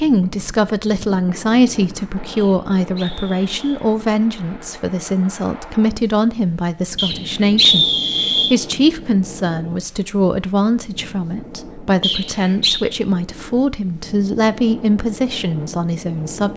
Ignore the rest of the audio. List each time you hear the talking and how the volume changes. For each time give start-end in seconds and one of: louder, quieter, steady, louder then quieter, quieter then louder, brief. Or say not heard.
0.0-16.5 steady.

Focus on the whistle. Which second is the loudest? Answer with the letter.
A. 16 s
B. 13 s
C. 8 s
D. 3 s
C.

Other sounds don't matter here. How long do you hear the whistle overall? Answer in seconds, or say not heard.
4 s.